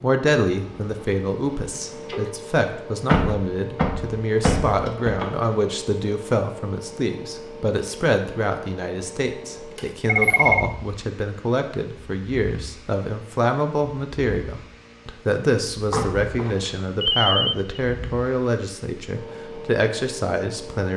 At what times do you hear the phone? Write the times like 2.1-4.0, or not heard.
1.7-2.4, 10.1-10.7, 16.4-17.6.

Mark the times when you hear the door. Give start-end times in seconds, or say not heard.
3.0-5.3, 15.8-16.6.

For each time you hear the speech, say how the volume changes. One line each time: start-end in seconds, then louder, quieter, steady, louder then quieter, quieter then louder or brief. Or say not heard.
0.0-20.9 steady.